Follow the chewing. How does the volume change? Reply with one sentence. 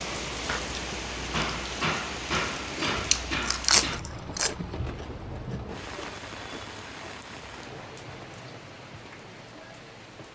The volume of the chewing goes down.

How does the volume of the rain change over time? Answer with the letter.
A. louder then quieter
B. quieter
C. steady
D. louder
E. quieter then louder
B.